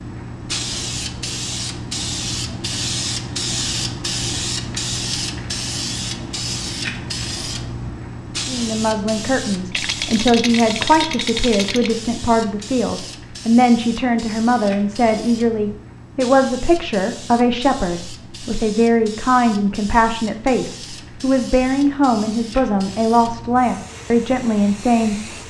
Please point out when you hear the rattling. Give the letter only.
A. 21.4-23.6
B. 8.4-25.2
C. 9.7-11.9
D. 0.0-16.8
C.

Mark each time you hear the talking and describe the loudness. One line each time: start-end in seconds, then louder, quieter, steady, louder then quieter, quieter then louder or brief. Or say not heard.
8.4-25.2 steady.